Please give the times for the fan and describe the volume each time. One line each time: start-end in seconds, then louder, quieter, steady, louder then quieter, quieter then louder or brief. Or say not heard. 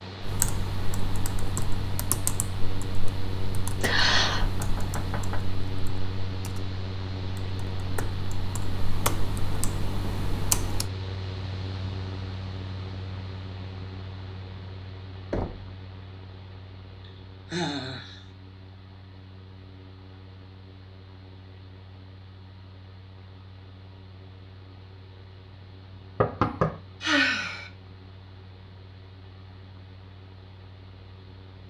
0.0-31.6 quieter.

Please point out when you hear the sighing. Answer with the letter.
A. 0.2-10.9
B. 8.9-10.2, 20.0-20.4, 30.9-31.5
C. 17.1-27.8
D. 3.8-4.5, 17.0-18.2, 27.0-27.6
D.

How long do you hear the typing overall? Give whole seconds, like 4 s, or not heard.
11 s.